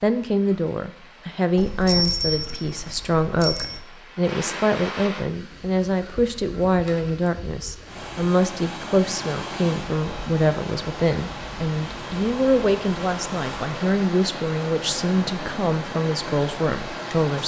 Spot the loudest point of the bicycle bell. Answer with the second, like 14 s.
2 s.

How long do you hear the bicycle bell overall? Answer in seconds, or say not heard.
2 s.